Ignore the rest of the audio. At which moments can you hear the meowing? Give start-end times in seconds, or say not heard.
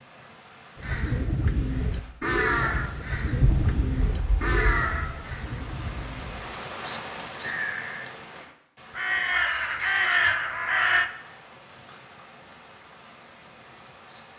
3.4-5.1.